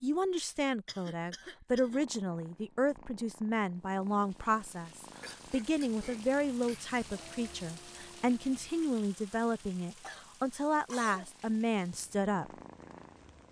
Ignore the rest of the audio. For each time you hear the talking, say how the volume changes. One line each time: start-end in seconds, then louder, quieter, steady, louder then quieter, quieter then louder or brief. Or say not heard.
0.0-12.5 steady.